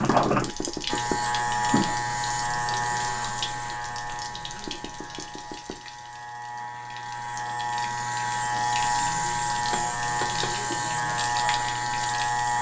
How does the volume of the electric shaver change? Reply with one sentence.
The volume of the electric shaver goes down, then up.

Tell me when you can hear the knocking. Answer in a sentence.
You can hear the knocking from 0.3 to 1.2 s, from 4.7 to 5.8 s and from 9.7 to 10.6 s.